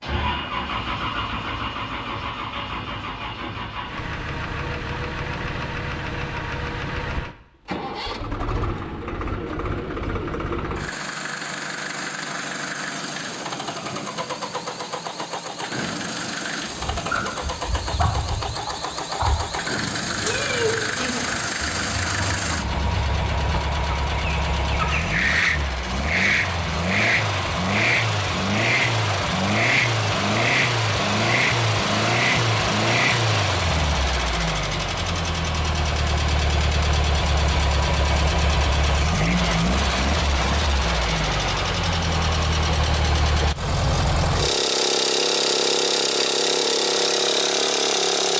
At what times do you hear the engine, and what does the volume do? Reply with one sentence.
You can hear the engine from 0.0 to 48.3 s, getting louder.